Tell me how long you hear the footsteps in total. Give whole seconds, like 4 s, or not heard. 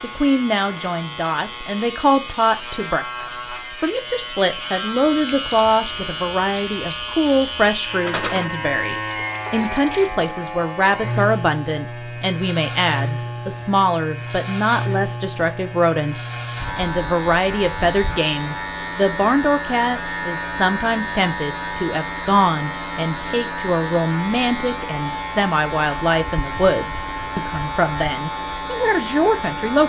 not heard.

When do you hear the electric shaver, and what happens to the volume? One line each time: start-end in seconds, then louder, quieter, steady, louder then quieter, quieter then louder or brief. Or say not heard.
0.0-29.8 steady.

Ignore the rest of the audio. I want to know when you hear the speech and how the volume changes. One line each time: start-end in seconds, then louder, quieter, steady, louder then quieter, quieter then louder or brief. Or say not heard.
0.0-29.8 steady.